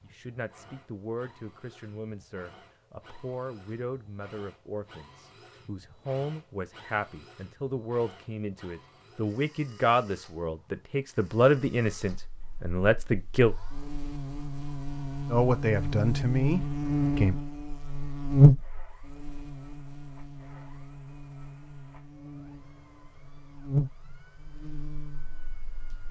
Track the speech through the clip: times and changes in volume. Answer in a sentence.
You can hear the speech from 0.0 to 13.6 s, getting louder; and briefly from 15.3 to 17.4 s.